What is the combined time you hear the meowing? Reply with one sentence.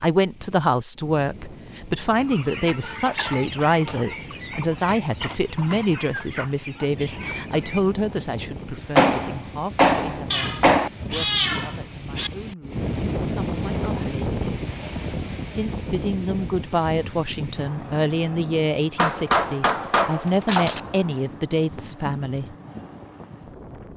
You can hear the meowing for 2 seconds altogether.